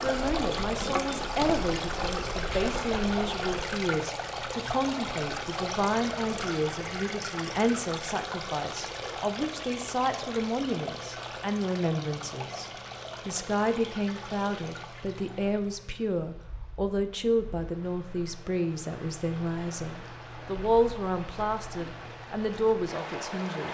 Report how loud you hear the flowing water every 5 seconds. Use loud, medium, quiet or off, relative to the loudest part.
loud, loud, medium, quiet, medium.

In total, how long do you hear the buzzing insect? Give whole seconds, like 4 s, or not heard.
4 s.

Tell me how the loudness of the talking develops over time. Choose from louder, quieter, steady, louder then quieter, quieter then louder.
steady.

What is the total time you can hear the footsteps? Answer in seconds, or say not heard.
not heard.